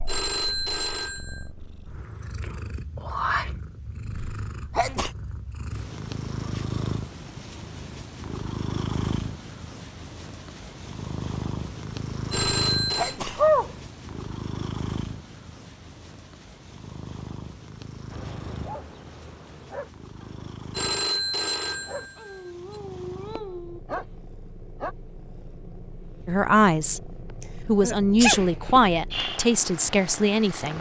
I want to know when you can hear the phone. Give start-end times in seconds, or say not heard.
0.1-1.4, 12.3-13.2, 20.7-22.8.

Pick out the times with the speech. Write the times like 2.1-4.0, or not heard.
26.2-30.7.